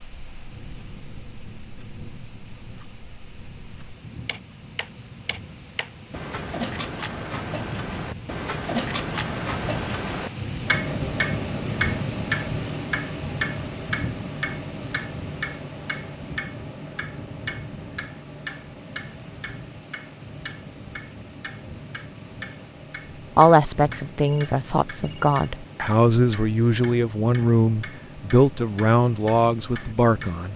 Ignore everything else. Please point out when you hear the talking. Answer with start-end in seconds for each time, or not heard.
23.4-30.5.